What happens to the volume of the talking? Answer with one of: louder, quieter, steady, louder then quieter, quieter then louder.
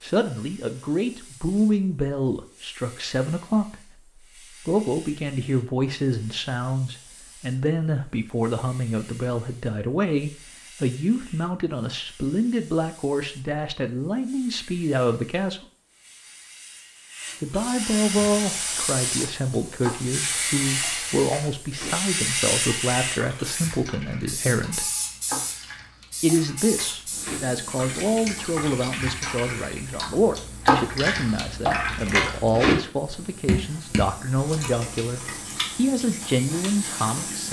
steady.